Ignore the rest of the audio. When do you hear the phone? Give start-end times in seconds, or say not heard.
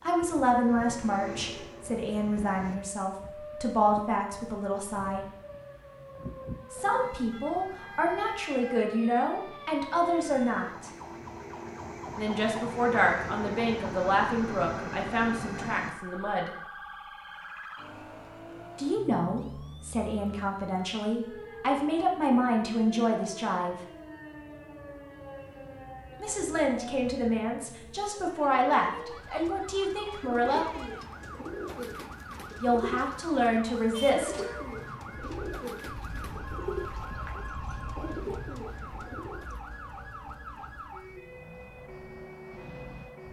36.4-38.2.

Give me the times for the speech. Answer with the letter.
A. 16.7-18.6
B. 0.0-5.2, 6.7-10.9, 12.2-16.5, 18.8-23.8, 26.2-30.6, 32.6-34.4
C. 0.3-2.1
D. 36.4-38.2
B.